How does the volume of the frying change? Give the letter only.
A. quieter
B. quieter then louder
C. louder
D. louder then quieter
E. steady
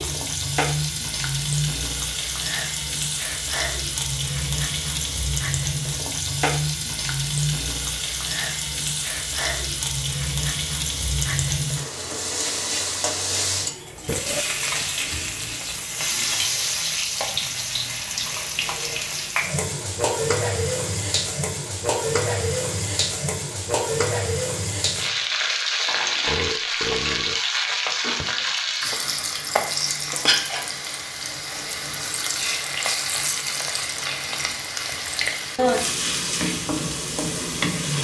E.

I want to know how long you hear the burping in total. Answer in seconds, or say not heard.
2 s.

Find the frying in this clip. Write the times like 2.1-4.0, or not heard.
0.0-37.9.